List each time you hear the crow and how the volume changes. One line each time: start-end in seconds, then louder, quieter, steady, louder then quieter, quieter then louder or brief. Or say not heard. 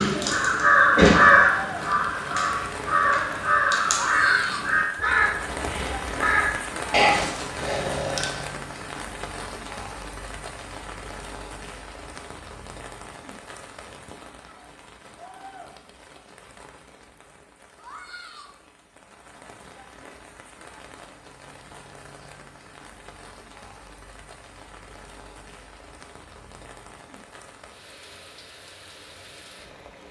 0.0-8.3 quieter.